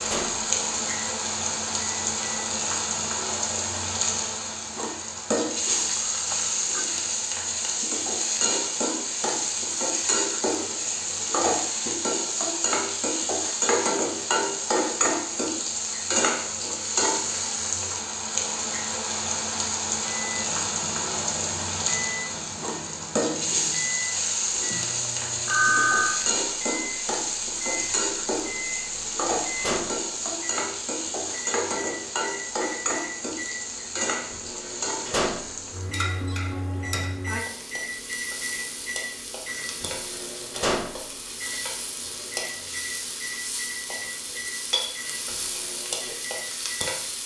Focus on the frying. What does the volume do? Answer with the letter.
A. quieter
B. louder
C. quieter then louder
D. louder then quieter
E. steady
A.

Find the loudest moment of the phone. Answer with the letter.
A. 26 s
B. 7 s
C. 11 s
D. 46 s
A.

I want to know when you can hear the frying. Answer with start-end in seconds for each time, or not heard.
0.0-47.2.